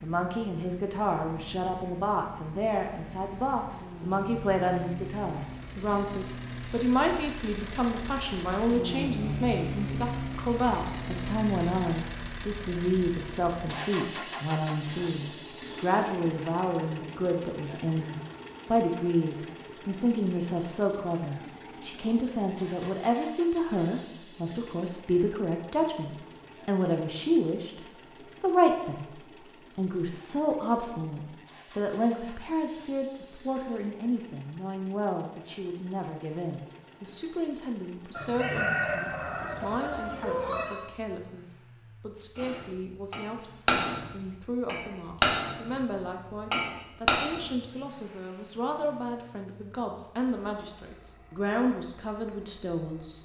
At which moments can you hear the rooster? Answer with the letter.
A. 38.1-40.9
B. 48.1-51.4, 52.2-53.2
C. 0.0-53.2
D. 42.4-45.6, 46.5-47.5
A.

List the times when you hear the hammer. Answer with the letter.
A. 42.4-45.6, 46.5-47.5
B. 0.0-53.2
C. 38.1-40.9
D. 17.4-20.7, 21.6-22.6
A.